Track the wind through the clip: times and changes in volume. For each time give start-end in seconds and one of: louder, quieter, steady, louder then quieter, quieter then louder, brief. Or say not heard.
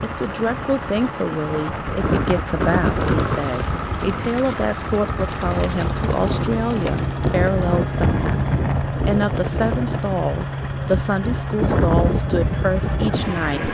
0.0-13.6 steady.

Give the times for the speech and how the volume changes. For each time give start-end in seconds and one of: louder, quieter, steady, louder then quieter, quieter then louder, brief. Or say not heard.
0.0-13.6 steady.